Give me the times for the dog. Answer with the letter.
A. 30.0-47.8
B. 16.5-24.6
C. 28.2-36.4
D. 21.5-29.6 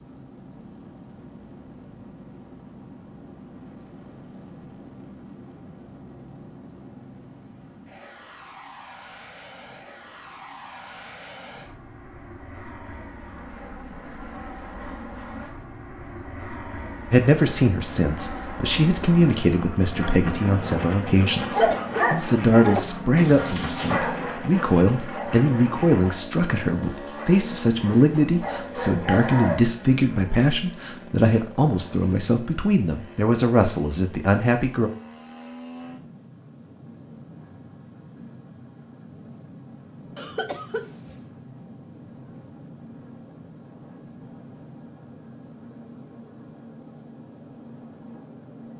D.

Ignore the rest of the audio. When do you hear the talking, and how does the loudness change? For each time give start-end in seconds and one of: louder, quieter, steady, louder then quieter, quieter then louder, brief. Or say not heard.
17.1-34.9 steady.